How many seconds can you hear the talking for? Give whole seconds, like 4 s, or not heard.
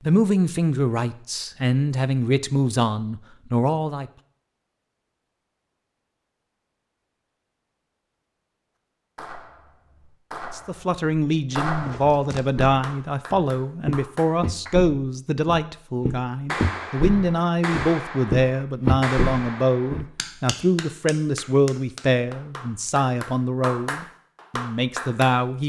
19 s.